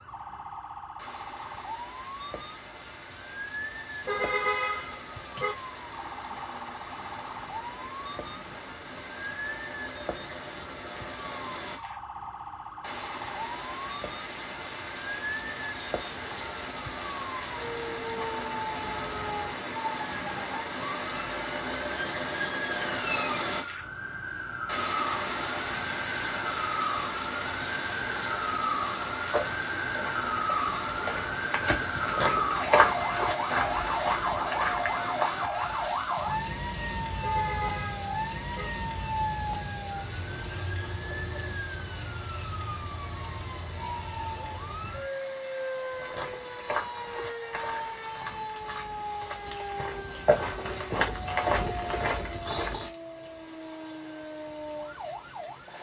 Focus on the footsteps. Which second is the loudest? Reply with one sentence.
The volume of the footsteps peaks at 33 seconds.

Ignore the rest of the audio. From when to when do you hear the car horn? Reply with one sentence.
The car horn can be heard from 4.0 to 5.5 s and from 37.2 to 38.7 s.